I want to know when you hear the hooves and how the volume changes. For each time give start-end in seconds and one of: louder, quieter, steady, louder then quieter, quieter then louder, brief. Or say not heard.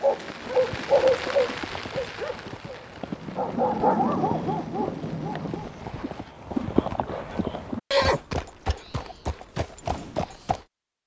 0.3-10.7 louder then quieter.